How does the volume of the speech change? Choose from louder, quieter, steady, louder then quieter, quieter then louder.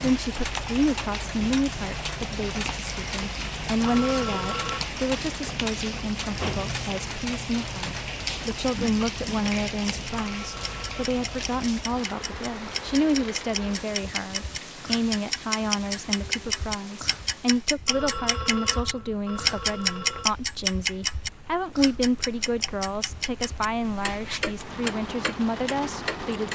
steady.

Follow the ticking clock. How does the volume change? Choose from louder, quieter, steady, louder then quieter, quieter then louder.
louder then quieter.